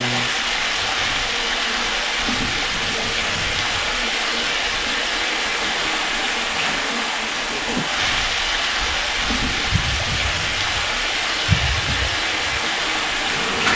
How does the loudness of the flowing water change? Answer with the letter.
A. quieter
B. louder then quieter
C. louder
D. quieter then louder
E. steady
E.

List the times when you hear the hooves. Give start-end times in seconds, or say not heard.
not heard.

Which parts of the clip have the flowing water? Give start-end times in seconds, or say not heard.
0.0-13.7.